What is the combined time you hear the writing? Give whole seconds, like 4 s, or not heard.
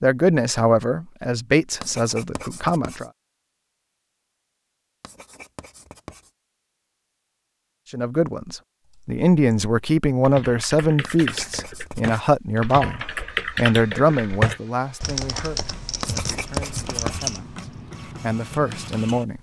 5 s.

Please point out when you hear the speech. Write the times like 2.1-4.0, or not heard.
0.0-3.1, 7.9-19.3.